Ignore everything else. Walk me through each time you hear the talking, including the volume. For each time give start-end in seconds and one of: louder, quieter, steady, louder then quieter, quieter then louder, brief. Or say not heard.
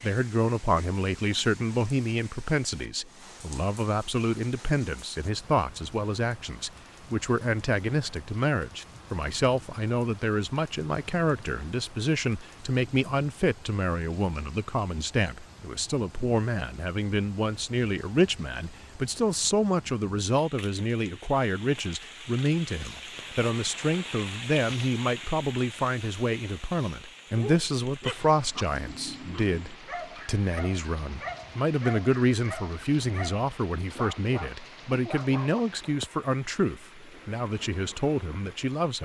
0.0-38.9 steady.